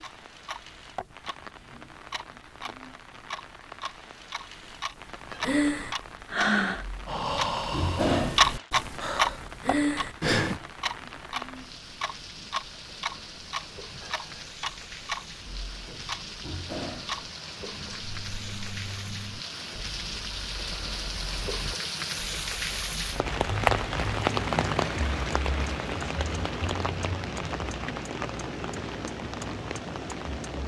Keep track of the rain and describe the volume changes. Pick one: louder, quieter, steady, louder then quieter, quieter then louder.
louder.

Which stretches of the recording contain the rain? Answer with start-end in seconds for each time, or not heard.
0.0-30.6.